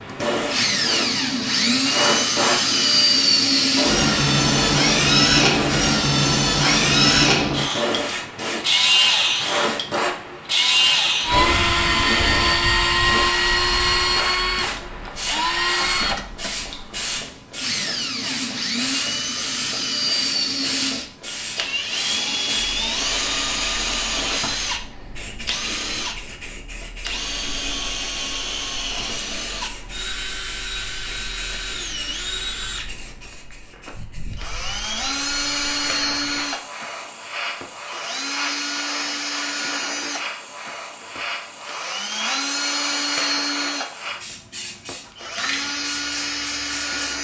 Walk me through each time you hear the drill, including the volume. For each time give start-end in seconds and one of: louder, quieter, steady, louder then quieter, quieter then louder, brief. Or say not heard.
0.1-47.1 quieter.